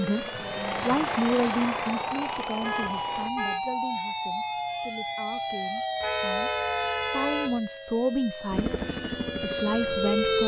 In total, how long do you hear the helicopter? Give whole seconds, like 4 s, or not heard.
5 s.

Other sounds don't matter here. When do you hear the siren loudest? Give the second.
10 s.